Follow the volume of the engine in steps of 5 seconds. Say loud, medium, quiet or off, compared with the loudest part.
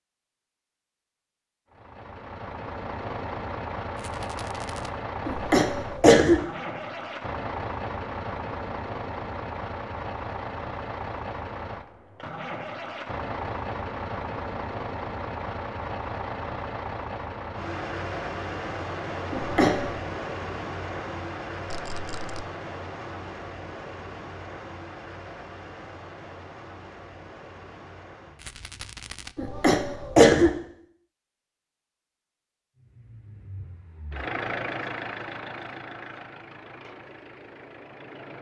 loud, loud, loud, loud, loud, medium, loud, medium.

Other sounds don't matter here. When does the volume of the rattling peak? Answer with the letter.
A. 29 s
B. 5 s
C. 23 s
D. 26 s
A.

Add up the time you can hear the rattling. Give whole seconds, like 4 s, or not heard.
3 s.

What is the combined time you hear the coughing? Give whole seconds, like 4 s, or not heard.
3 s.